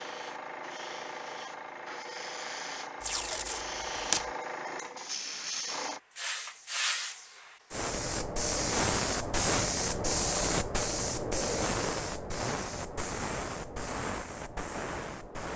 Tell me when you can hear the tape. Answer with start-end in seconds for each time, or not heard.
3.0-4.3.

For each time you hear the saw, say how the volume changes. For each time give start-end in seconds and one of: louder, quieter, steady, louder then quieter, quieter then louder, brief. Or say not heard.
not heard.